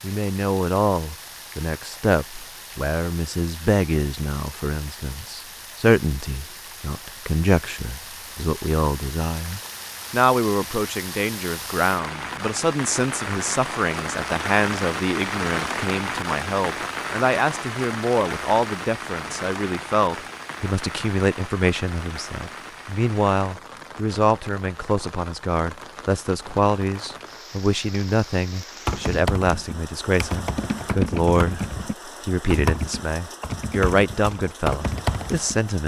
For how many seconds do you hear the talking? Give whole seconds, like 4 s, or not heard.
36 s.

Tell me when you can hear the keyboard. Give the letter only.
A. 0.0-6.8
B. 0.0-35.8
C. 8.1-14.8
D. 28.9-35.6
D.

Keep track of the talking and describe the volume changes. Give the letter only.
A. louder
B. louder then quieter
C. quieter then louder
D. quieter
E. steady
E.